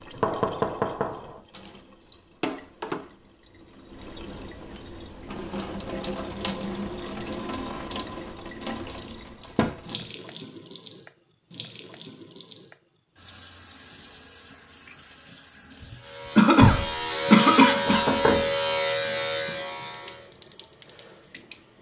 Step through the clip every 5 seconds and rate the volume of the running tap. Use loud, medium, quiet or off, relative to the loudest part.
medium, loud, medium, quiet, quiet.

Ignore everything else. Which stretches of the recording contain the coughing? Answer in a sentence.
You can hear the coughing from 16.4 to 18.0 s.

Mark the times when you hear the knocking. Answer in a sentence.
You can hear the knocking from 0.1 to 1.4 s, from 9.6 to 10.1 s and from 17.8 to 18.5 s.